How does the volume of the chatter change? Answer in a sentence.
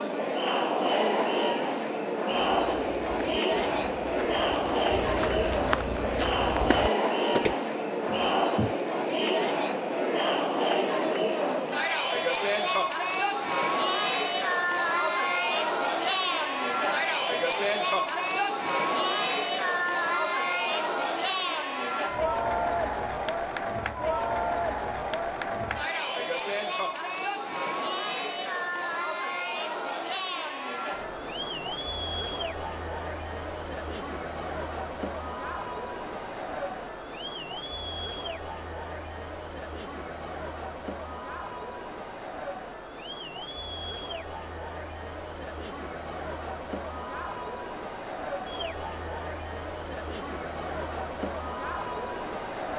The loudness of the chatter goes down.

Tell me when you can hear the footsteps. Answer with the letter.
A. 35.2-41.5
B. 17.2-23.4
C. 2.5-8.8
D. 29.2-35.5
C.